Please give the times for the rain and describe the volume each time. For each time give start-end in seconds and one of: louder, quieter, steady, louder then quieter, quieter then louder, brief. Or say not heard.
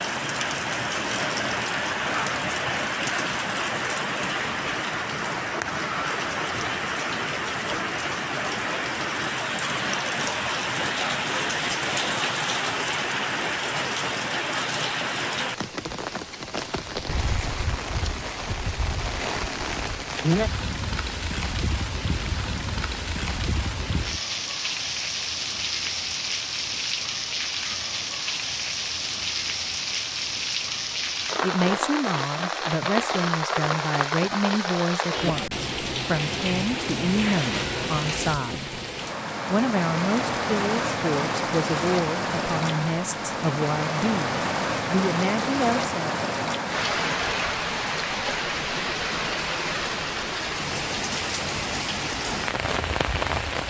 0.0-53.6 steady.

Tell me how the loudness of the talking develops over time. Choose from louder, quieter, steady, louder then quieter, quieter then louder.
steady.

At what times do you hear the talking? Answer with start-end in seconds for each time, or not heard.
31.4-38.8, 39.5-46.2.